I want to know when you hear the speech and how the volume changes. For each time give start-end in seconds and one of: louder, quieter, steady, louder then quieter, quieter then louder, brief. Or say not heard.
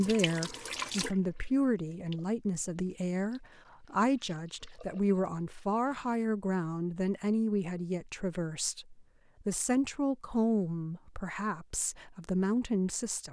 0.0-13.2 steady.